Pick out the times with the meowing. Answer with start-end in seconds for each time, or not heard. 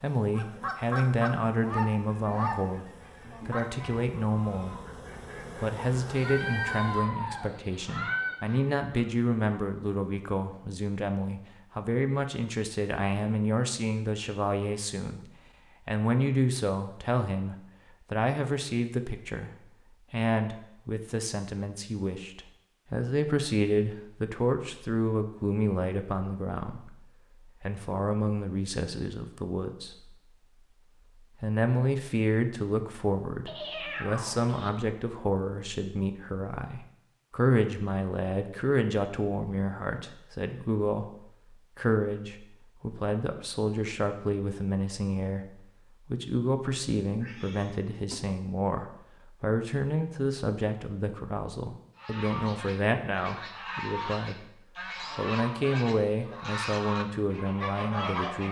6.2-8.4, 33.5-34.7, 47.2-48.2.